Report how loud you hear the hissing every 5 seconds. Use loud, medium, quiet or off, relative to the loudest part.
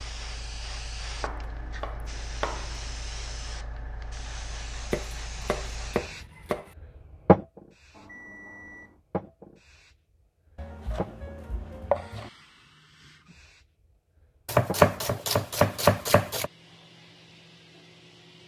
medium, loud, quiet, quiet.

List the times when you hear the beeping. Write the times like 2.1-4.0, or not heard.
7.9-9.0.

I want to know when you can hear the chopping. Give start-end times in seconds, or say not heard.
1.2-2.8, 4.9-6.8, 10.6-12.3, 14.4-16.5.